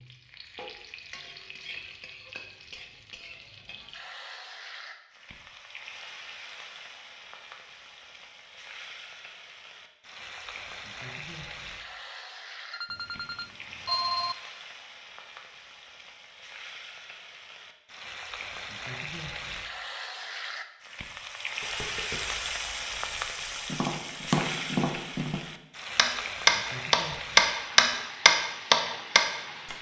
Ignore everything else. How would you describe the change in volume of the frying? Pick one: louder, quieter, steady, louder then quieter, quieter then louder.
louder.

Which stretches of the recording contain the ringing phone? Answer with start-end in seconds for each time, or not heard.
12.7-14.3.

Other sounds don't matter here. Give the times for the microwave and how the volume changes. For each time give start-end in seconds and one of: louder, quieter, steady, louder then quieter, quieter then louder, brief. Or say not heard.
not heard.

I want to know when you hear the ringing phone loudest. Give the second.
14 s.